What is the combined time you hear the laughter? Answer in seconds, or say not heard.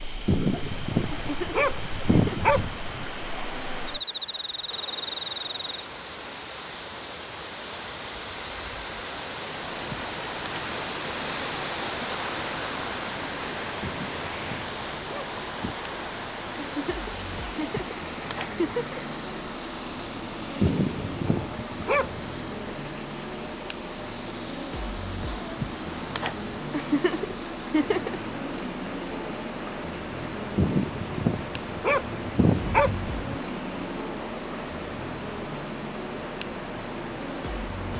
5 s.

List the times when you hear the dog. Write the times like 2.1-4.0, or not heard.
0.2-3.0, 13.8-15.8, 20.6-22.2, 30.6-33.4.